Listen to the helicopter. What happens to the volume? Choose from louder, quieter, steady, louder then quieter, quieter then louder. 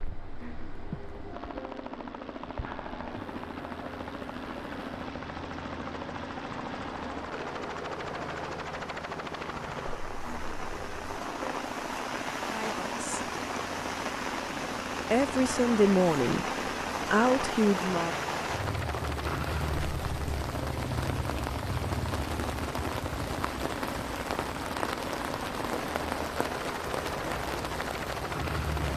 steady.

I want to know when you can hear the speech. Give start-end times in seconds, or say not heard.
12.4-13.1, 15.1-16.4, 17.1-18.1.